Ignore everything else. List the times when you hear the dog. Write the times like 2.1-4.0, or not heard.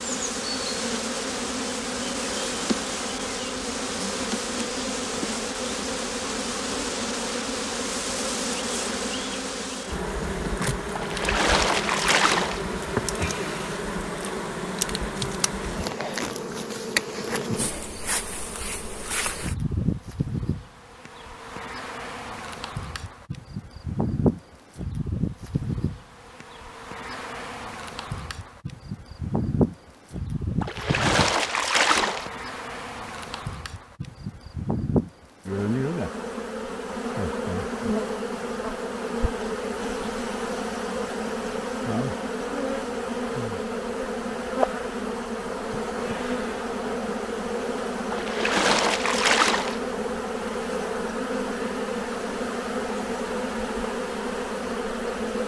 not heard.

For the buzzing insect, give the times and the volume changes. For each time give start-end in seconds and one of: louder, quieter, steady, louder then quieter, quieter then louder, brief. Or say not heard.
0.0-55.4 steady.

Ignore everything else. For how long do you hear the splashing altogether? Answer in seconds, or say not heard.
5 s.